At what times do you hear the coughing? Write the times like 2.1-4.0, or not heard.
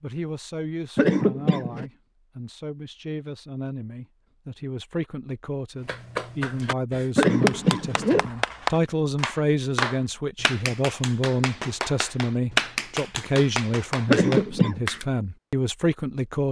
0.9-1.9, 7.2-8.3, 14.1-14.8.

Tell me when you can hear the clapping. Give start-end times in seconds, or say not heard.
5.8-15.1.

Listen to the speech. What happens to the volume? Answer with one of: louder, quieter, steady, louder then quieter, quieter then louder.
louder.